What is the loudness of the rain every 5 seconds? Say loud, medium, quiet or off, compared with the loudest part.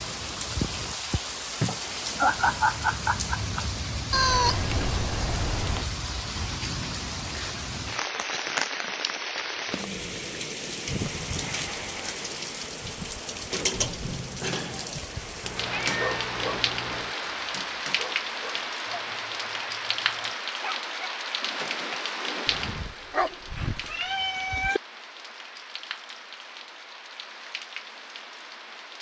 loud, loud, loud, loud, loud, medium.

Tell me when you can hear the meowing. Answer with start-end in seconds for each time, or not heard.
4.1-5.8, 15.4-17.1, 23.9-24.8.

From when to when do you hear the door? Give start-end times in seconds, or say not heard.
not heard.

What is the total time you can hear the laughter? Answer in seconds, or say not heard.
2 s.